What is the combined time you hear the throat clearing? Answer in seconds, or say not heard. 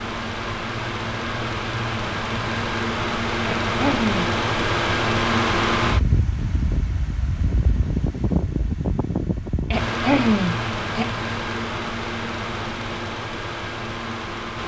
2 s.